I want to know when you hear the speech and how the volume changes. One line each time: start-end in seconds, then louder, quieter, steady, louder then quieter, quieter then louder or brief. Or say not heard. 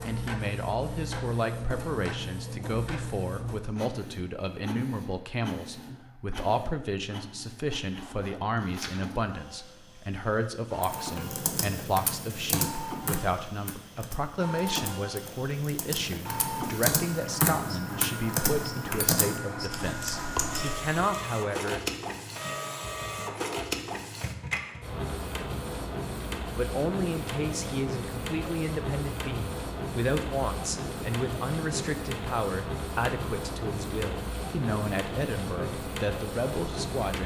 0.1-21.8 steady
26.6-37.2 steady.